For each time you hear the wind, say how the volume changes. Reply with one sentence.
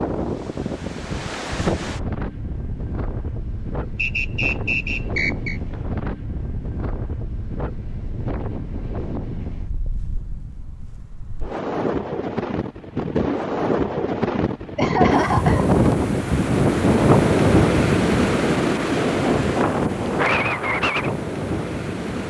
You can hear the wind from 0.0 to 22.2 s, getting louder.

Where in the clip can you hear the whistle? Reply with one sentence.
You can hear the whistle from 4.0 to 5.6 s.